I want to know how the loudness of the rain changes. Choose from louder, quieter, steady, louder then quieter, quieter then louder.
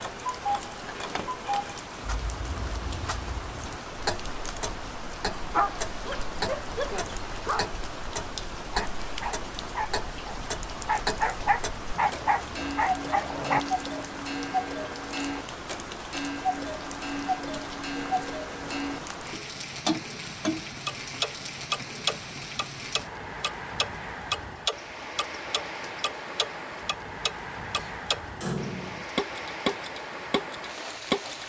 steady.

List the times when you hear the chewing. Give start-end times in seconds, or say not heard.
not heard.